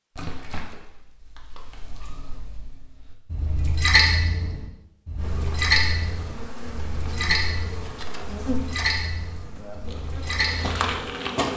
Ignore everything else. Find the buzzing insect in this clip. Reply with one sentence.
The buzzing insect can be heard from 5.2 to 11.5 s.